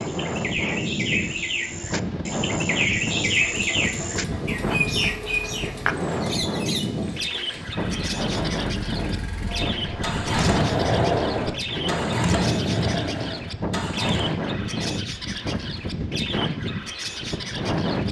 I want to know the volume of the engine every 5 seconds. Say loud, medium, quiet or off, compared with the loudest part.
medium, quiet, loud, off.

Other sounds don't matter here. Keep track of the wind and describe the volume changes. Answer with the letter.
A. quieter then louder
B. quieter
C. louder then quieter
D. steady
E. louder
D.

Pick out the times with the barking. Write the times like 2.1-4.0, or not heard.
not heard.